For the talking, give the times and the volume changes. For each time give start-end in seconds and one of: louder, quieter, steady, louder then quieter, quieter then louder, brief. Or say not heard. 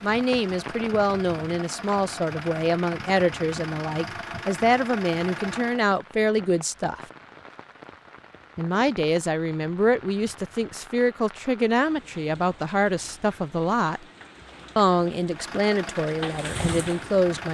0.0-7.0 steady
8.6-14.0 steady
14.8-17.4 brief.